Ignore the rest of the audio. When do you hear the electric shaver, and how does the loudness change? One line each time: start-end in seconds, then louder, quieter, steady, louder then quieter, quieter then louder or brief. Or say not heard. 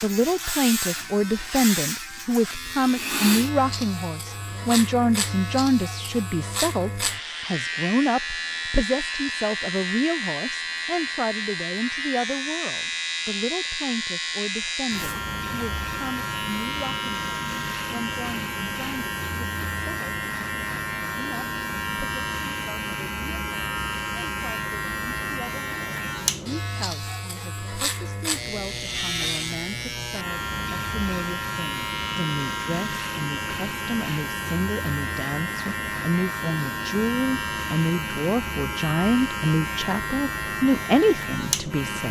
0.0-42.0 steady.